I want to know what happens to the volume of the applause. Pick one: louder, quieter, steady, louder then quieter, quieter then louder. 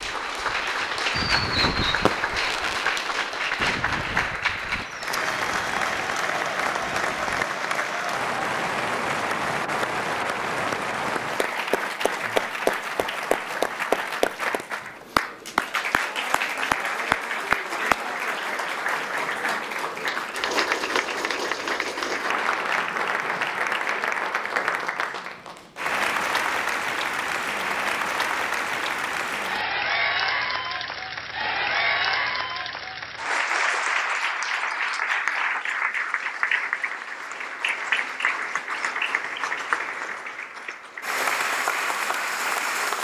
steady.